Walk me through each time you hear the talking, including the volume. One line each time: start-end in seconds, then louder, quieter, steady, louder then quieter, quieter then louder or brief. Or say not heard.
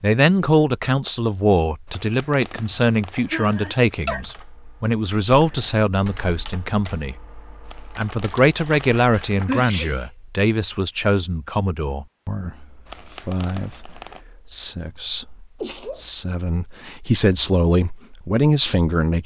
0.0-19.2 quieter then louder.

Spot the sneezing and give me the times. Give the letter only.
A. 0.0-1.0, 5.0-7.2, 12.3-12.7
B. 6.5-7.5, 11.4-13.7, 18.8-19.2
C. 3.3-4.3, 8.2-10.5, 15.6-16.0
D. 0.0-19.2
C.